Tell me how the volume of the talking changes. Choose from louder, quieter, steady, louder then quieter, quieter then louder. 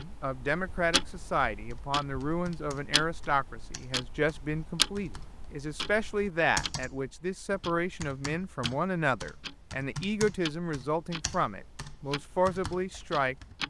steady.